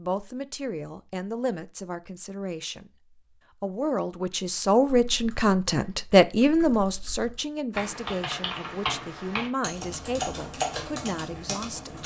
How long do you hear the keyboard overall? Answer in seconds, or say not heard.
7 s.